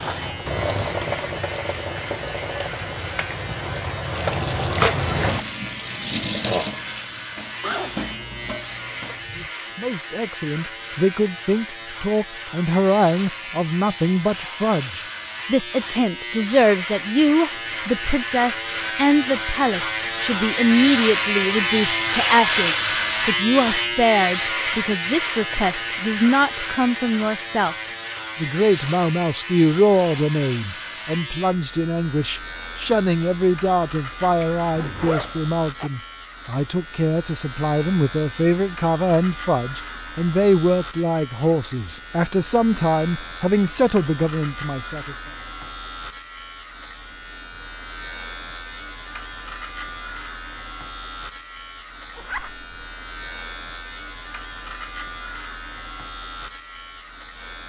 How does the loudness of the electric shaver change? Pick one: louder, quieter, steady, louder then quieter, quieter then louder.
louder then quieter.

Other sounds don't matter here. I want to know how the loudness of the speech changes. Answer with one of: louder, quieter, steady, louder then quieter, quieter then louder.
steady.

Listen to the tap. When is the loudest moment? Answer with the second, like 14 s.
5 s.